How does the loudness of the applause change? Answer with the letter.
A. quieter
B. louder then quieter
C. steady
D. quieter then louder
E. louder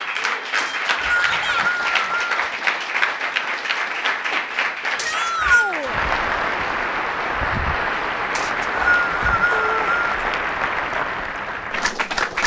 C.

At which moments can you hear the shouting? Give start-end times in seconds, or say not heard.
1.1-1.7, 5.0-6.0, 9.5-9.9.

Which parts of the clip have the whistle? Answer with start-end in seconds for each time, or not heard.
0.6-2.4, 5.0-5.8, 8.3-10.1.